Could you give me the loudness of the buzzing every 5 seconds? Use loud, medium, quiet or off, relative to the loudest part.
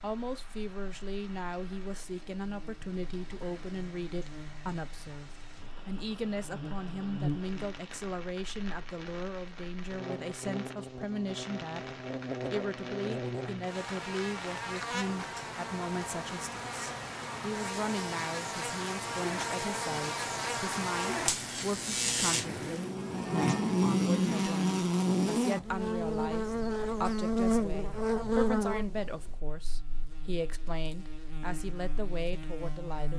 quiet, medium, medium, medium, loud, loud, quiet.